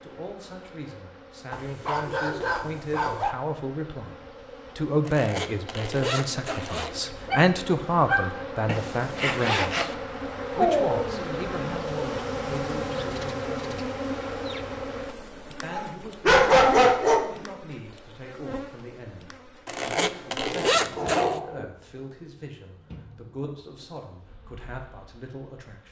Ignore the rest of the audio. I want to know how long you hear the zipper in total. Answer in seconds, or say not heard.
5 s.